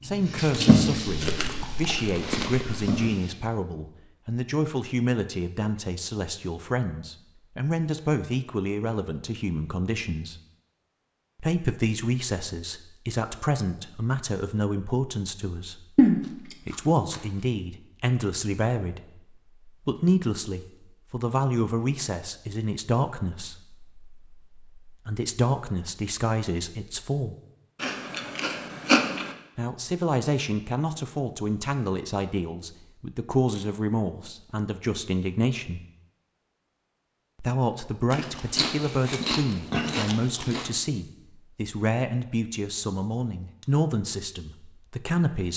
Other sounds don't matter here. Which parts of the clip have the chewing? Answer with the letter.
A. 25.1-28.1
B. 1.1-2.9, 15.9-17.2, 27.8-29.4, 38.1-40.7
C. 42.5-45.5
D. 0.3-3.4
B.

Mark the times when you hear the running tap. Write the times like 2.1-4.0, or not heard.
0.3-3.4.